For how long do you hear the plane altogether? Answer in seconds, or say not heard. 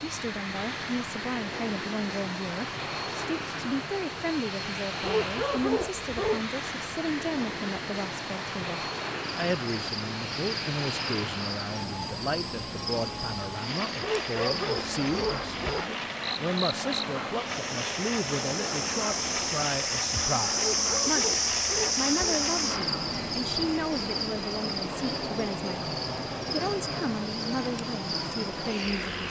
29 s.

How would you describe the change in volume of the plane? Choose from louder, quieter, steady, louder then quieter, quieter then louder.
steady.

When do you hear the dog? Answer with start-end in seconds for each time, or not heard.
5.0-6.5, 14.0-15.8, 20.6-22.4.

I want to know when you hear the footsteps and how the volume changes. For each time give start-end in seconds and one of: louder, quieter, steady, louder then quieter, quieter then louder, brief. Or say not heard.
not heard.